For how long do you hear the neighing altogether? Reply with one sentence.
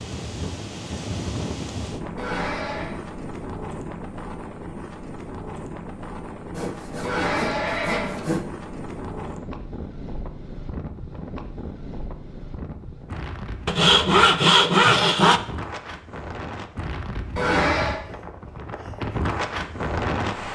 The neighing can be heard for 3 seconds in total.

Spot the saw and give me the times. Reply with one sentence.
You can hear the saw from 6.5 to 8.4 s and from 13.7 to 15.4 s.